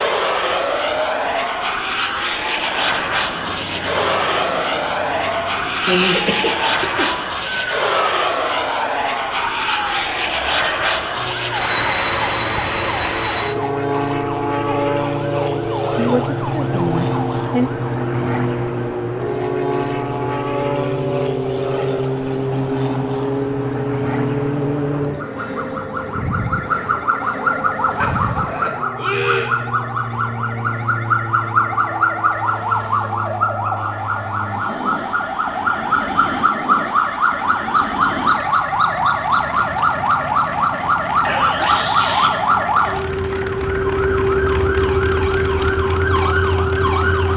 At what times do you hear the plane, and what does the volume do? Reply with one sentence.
The plane can be heard from 0.0 to 47.3 s, getting quieter.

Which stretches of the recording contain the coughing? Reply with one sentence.
You can hear the coughing from 5.8 to 7.6 s, from 28.0 to 29.6 s and from 41.2 to 42.3 s.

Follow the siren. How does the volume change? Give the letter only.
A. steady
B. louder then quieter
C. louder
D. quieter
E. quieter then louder
C.